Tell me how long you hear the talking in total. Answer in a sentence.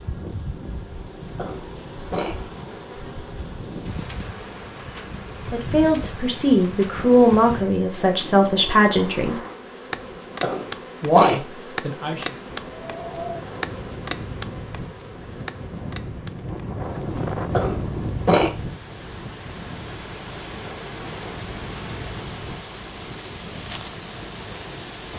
The talking can be heard for 5 seconds in total.